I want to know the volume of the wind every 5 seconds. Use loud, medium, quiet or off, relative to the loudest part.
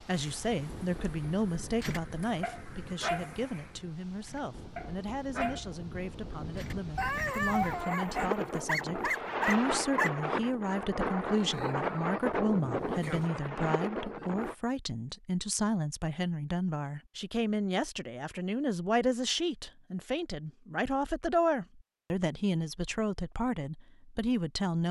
quiet, loud, loud, off, off.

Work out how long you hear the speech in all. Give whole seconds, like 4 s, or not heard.
25 s.